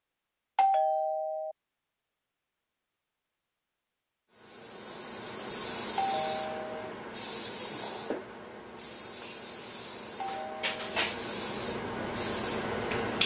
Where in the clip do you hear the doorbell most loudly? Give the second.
1 s.